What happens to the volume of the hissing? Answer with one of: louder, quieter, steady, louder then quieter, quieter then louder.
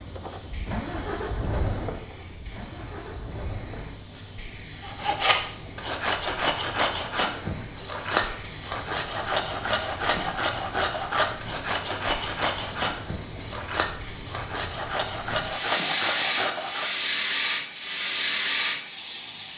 louder.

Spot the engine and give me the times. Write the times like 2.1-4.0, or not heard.
0.0-4.0.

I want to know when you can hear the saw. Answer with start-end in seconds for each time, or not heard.
4.8-16.9.